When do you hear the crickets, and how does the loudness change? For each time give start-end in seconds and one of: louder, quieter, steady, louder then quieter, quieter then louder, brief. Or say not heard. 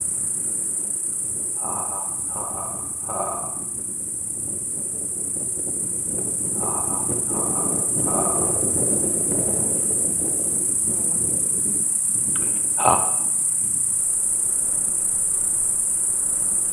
0.0-16.6 louder.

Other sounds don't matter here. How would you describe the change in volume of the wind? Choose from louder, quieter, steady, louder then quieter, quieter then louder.
louder then quieter.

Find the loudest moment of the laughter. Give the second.
13 s.